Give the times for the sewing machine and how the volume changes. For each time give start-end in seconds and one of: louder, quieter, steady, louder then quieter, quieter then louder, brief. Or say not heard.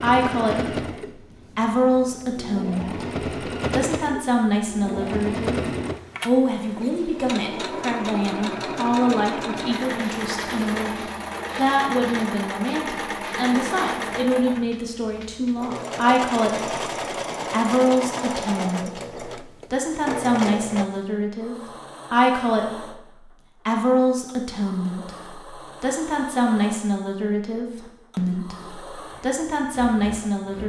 0.0-30.6 quieter.